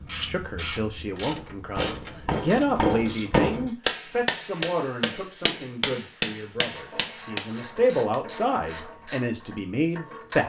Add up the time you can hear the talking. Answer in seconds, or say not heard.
10 s.